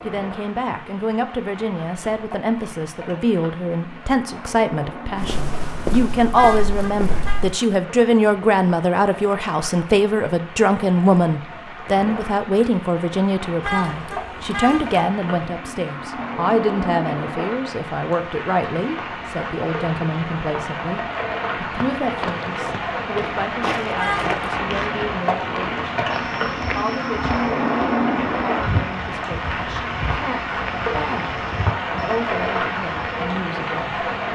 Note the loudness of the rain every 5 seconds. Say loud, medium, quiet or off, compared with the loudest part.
quiet, quiet, medium, medium, loud, loud, loud.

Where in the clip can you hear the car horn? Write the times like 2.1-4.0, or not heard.
6.3-7.4, 13.6-15.2, 23.9-24.4.